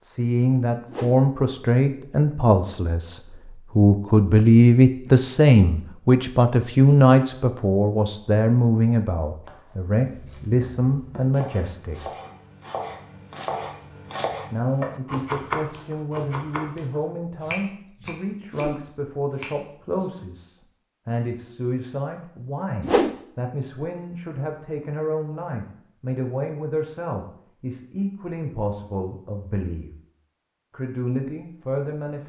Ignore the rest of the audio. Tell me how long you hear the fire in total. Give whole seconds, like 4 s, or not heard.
not heard.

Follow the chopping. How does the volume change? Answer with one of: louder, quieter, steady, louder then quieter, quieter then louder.
louder then quieter.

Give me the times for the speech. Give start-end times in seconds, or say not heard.
0.0-12.1, 14.5-29.9, 30.7-32.2.